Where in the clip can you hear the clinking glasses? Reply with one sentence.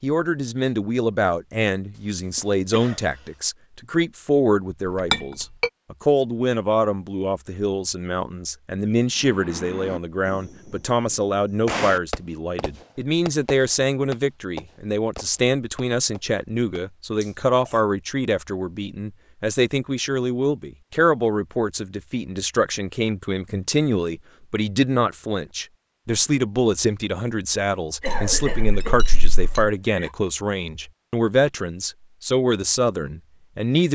The clinking glasses can be heard from 5.1 to 5.7 s and from 28.1 to 29.7 s.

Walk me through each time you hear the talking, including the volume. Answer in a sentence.
The talking can be heard from 0.0 to 33.8 s, at a steady volume.